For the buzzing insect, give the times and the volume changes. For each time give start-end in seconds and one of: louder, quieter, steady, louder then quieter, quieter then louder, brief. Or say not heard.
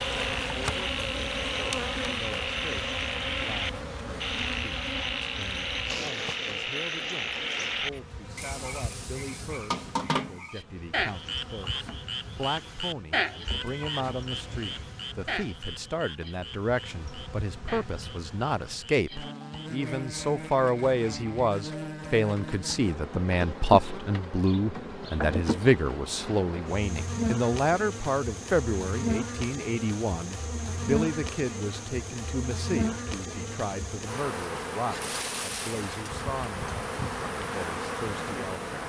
0.0-38.8 quieter then louder.